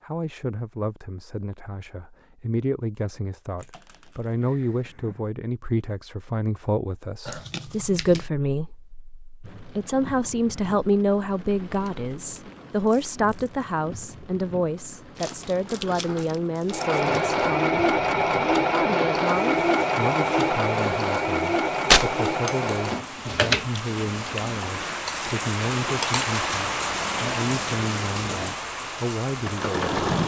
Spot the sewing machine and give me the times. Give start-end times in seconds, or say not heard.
16.7-30.2.